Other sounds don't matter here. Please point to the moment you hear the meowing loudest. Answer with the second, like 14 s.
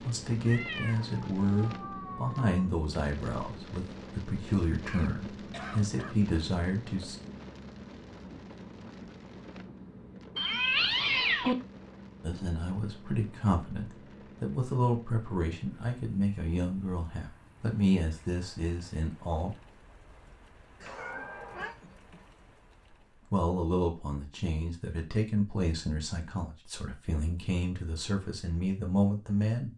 11 s.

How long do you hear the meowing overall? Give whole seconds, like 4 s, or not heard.
4 s.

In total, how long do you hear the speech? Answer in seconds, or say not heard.
21 s.